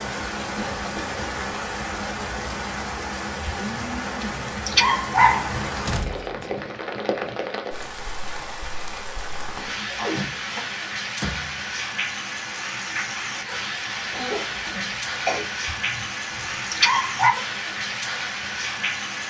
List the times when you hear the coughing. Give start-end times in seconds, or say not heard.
0.6-1.2, 9.6-10.7, 14.1-15.4.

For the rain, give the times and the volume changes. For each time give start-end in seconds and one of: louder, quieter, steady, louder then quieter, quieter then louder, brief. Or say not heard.
0.0-19.2 steady.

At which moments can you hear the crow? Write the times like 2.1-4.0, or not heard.
not heard.